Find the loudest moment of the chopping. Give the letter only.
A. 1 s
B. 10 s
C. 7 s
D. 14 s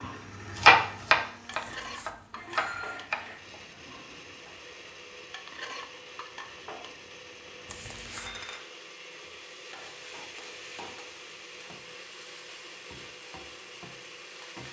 A.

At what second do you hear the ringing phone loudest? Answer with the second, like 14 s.
3 s.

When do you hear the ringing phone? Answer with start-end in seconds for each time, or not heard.
1.5-3.0, 7.7-8.4.